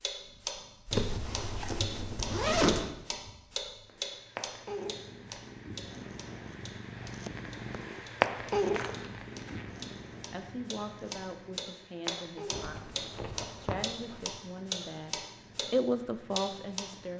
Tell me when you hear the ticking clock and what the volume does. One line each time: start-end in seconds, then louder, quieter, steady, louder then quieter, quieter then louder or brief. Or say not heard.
0.0-15.7 quieter then louder
16.3-17.1 brief.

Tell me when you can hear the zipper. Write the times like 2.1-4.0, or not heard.
0.9-2.9, 8.7-9.7, 12.5-14.2.